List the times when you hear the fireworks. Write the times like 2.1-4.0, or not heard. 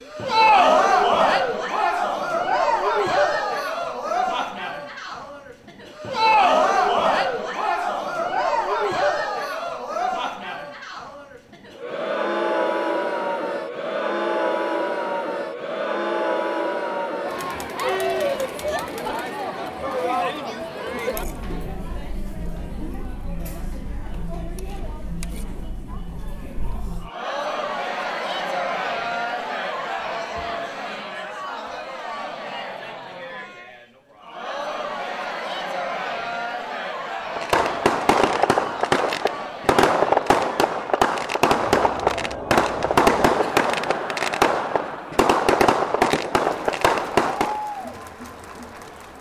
37.4-47.6.